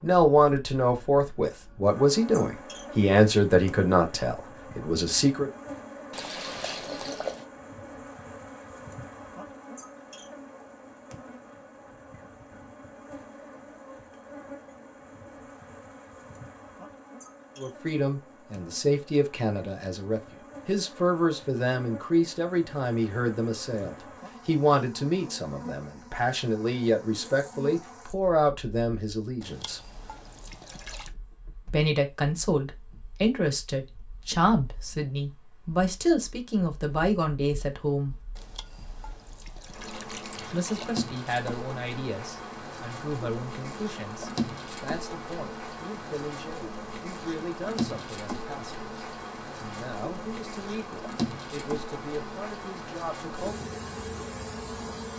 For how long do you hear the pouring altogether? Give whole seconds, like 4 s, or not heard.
6 s.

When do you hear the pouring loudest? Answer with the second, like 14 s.
7 s.